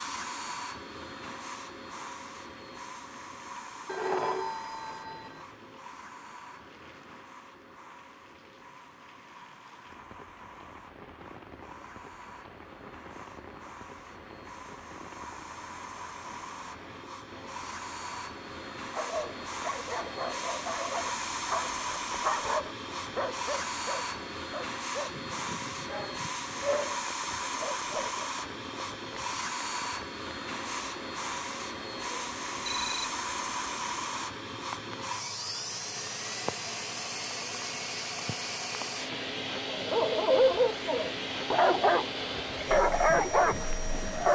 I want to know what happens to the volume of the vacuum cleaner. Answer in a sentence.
The volume of the vacuum cleaner goes up.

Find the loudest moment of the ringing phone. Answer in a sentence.
The loudest moment of the ringing phone is at 4 seconds.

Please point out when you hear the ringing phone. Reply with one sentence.
You can hear the ringing phone from 3.9 to 5.4 s and from 32.6 to 33.1 s.